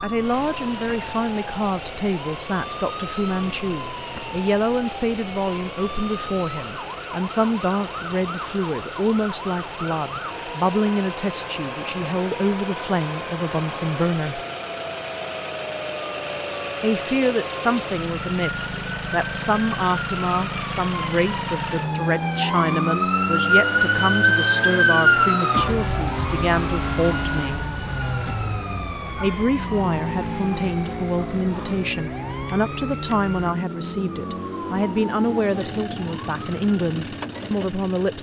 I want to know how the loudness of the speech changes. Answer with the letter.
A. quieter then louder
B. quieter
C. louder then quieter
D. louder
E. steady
E.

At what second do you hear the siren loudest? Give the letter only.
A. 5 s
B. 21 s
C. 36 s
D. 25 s
D.